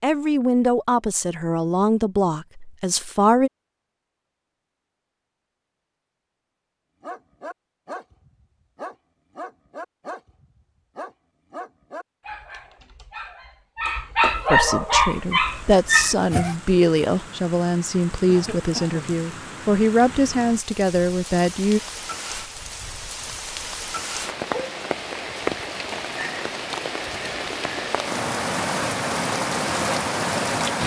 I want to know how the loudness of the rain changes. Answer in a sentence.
The loudness of the rain goes up.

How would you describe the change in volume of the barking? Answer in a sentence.
The volume of the barking goes up.